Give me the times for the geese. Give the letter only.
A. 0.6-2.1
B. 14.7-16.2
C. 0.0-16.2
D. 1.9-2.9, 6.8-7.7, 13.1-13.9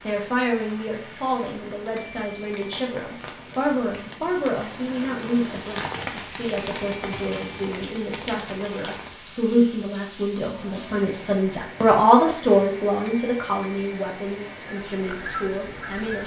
B.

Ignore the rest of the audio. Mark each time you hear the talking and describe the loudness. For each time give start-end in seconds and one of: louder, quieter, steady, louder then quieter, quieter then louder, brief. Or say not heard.
0.0-16.2 louder then quieter.